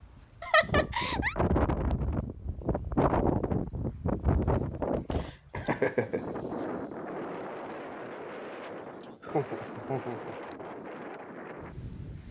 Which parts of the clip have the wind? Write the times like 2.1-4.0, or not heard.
0.0-12.2.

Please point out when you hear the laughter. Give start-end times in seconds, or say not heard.
0.4-1.4, 5.1-6.2, 9.2-10.6.